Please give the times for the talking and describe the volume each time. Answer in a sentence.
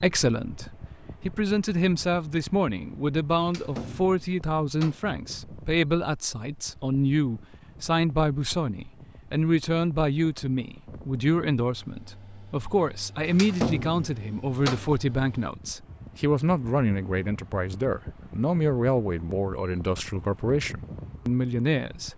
The talking can be heard from 0.0 to 22.1 s, at a steady volume.